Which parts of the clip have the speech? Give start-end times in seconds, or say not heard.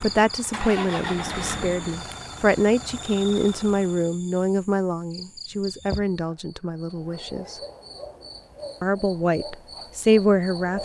0.0-7.5, 8.8-10.8.